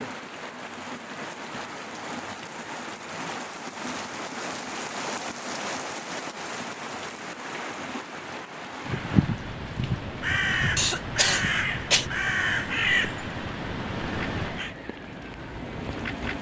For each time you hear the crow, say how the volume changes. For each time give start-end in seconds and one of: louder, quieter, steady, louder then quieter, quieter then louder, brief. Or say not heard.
8.8-14.8 louder then quieter.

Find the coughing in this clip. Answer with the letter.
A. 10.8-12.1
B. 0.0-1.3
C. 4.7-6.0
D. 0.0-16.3
A.